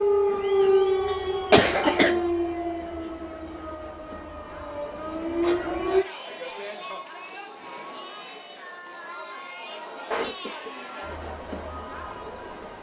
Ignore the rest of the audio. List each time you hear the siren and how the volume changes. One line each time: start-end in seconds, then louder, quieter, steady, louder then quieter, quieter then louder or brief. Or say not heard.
0.0-6.0 quieter then louder.